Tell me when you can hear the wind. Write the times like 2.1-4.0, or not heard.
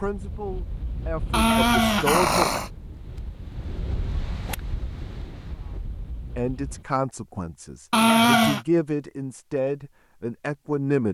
0.0-6.8.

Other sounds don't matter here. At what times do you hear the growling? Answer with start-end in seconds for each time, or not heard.
1.3-2.7, 7.9-8.6.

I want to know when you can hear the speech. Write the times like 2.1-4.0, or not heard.
0.0-2.6, 6.3-11.0.